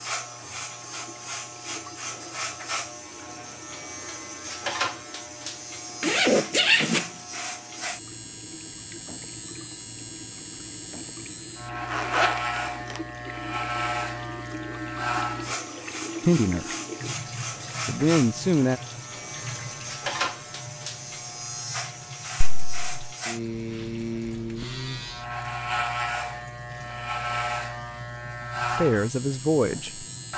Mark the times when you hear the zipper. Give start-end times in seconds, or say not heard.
6.0-7.0, 11.9-13.0, 22.4-23.1.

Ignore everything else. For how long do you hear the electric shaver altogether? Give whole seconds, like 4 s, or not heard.
30 s.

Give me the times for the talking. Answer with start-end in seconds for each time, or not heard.
16.2-16.7, 17.9-18.8, 28.8-30.1.